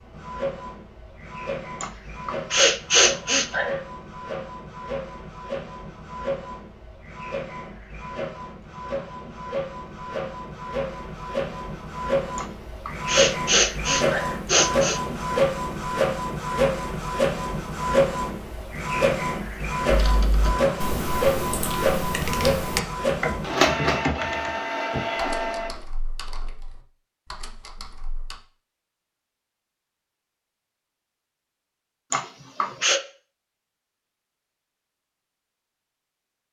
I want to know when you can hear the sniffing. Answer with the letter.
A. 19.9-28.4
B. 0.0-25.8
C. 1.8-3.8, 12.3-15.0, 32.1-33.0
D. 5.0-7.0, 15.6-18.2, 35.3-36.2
C.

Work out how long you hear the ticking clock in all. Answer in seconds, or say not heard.
not heard.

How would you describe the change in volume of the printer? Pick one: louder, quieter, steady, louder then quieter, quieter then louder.
louder.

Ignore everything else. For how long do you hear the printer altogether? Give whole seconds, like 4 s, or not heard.
26 s.